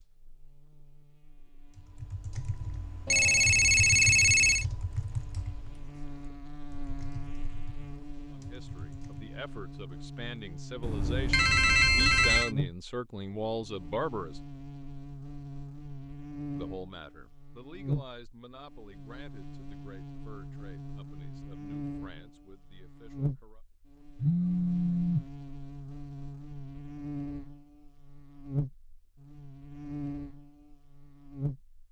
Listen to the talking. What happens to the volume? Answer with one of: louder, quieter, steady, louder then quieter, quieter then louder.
louder then quieter.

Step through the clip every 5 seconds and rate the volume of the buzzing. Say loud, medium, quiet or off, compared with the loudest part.
quiet, medium, loud, loud, loud, loud, loud.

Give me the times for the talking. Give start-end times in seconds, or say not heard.
8.3-14.4, 16.6-23.6.